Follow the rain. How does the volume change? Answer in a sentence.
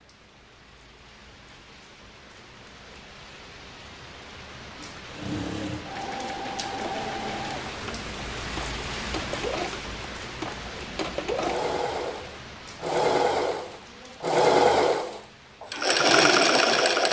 The loudness of the rain goes up, then down.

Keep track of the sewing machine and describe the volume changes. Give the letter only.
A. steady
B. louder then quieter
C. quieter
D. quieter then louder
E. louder
E.